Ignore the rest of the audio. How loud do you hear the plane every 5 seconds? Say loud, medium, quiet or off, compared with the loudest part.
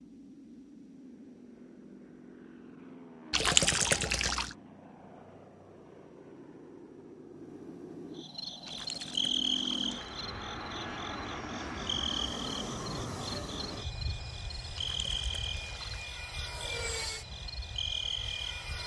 medium, medium, loud, loud.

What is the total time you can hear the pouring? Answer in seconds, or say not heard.
4 s.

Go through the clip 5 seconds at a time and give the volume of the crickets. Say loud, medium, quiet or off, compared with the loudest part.
off, loud, medium, medium.